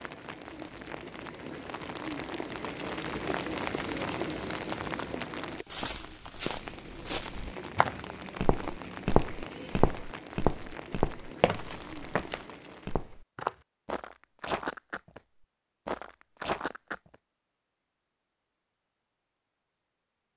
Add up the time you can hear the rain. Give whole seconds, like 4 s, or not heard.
13 s.